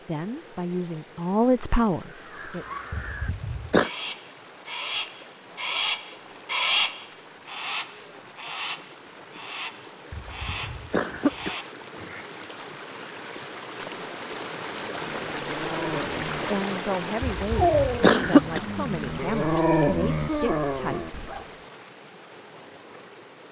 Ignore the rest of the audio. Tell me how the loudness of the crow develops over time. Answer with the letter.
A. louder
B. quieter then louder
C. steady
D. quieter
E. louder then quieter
E.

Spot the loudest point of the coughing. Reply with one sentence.
The volume of the coughing peaks at 18 seconds.